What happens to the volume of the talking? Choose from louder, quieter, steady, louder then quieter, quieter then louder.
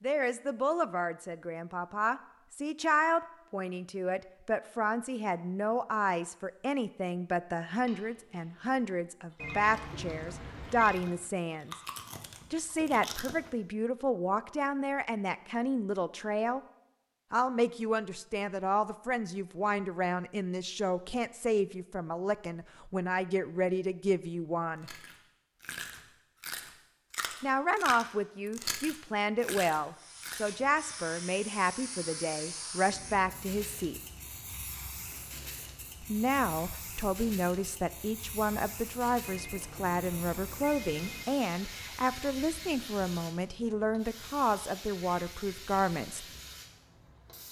steady.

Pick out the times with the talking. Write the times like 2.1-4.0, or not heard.
0.0-11.8, 12.5-16.6, 17.3-24.9, 27.4-34.0, 36.0-46.2.